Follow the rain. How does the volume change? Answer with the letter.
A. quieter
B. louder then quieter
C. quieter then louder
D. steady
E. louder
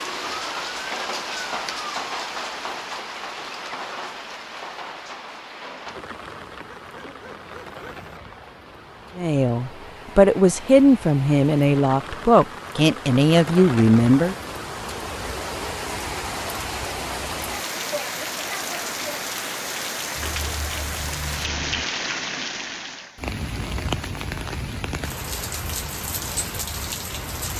C.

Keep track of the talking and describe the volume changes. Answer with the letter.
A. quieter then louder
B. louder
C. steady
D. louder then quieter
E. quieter
C.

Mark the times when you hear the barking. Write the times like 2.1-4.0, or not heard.
6.7-8.2, 20.1-21.9.